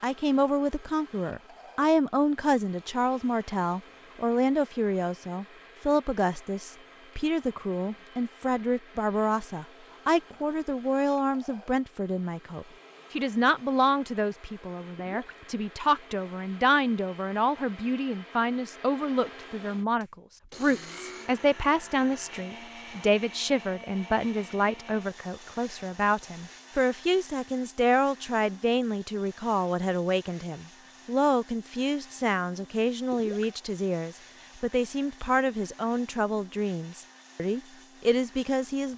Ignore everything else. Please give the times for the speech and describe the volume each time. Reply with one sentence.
The speech can be heard from 0.0 to 38.9 s, at a steady volume.